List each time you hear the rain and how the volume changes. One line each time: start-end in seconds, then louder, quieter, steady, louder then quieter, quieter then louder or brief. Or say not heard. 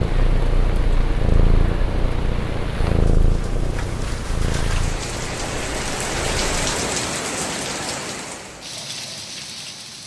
0.0-10.0 louder then quieter.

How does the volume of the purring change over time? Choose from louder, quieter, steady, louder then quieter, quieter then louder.
quieter.